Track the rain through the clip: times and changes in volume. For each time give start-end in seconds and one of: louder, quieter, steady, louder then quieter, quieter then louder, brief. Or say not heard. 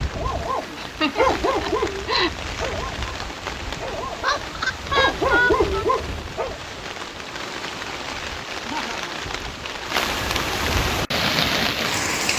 0.0-12.3 louder.